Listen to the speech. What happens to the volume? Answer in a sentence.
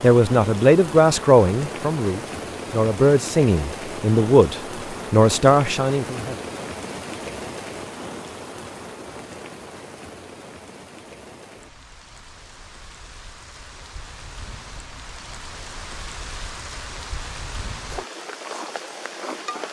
The volume of the speech goes down, then up.